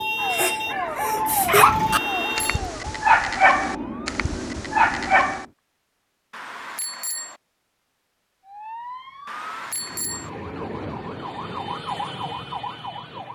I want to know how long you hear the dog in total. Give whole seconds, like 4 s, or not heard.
5 s.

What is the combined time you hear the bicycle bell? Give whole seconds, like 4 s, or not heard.
3 s.